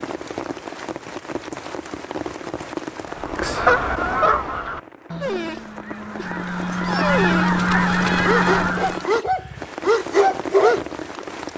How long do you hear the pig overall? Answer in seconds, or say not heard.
not heard.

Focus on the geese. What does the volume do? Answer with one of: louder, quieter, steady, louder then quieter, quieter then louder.
quieter then louder.